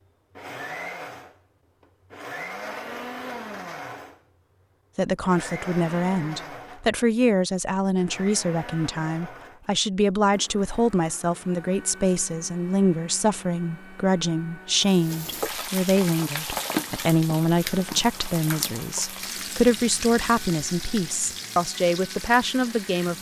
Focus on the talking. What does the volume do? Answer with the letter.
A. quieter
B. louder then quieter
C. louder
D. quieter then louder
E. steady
E.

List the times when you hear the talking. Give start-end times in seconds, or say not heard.
5.0-23.1.